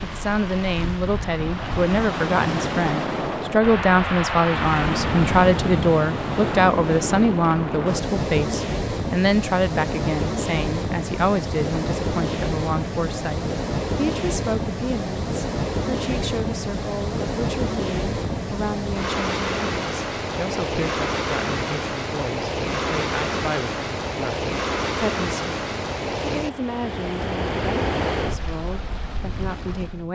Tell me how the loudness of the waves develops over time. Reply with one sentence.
The volume of the waves stays about the same.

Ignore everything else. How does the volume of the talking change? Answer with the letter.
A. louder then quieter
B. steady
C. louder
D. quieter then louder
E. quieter
E.